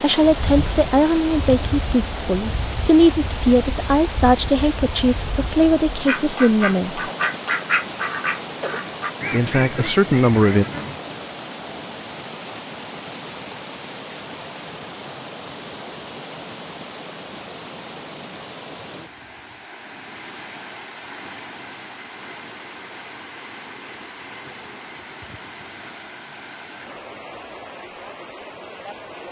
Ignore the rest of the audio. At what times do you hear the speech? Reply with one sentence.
The speech can be heard from 0.0 to 7.0 s and from 9.3 to 10.7 s.